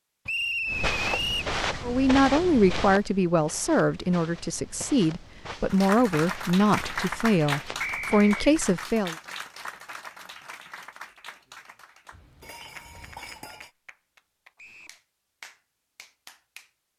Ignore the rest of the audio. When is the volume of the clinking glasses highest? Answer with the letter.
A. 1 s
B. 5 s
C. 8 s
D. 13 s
D.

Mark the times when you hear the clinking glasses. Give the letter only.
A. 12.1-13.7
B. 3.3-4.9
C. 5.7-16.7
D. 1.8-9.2
A.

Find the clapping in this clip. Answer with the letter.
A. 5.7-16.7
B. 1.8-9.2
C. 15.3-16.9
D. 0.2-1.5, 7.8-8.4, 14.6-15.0
A.